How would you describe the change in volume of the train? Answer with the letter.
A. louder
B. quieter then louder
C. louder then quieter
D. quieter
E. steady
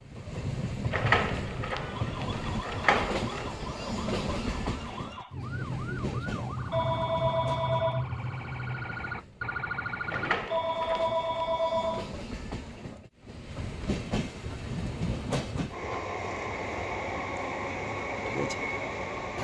B.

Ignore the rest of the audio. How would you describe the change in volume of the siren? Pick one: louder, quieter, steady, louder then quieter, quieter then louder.
louder.